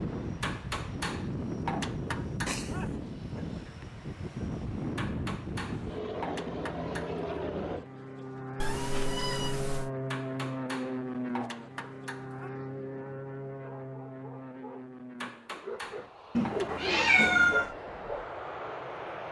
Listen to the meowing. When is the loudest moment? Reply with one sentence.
The loudest moment of the meowing is at 17 seconds.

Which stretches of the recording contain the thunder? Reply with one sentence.
The thunder can't be heard in this clip.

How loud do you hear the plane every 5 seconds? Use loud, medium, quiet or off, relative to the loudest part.
loud, loud, loud, medium.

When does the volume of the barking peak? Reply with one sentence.
The volume of the barking peaks at 17 seconds.